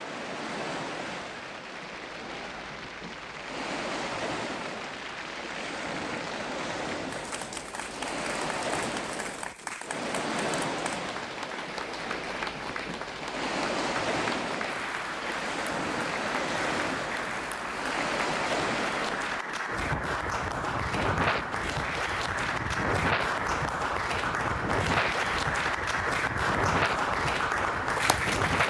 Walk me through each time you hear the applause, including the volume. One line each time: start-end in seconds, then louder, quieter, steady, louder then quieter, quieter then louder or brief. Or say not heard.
0.0-28.6 louder.